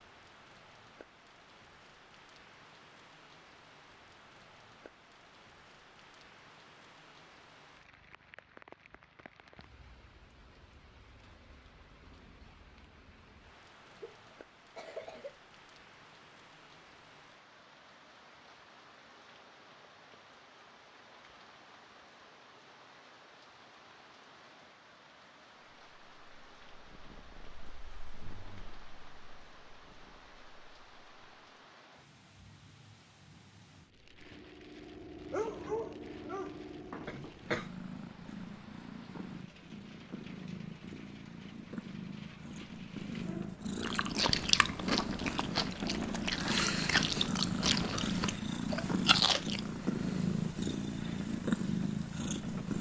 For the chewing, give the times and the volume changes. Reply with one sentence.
You can hear the chewing from 43.8 to 49.6 s, getting quieter then louder.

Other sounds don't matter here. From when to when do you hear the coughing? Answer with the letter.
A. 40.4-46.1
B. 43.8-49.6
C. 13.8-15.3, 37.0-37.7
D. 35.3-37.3
C.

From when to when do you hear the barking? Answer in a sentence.
You can hear the barking from 35.3 to 37.3 s.